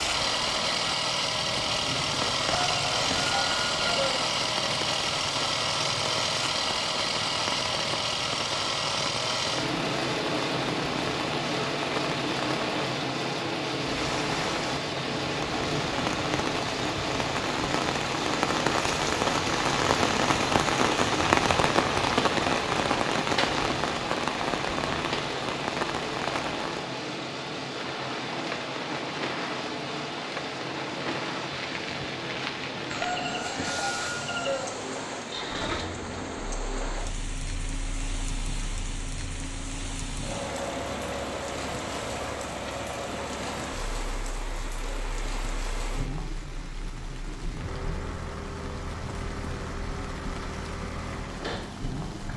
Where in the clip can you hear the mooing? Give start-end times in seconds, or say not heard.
not heard.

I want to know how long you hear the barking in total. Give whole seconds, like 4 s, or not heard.
not heard.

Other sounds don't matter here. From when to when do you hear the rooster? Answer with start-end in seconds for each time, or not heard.
2.5-4.2, 32.9-34.8.